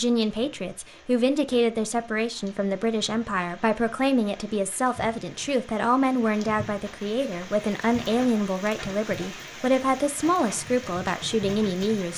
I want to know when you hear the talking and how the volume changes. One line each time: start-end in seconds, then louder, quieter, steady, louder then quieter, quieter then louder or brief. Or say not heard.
0.0-12.1 steady.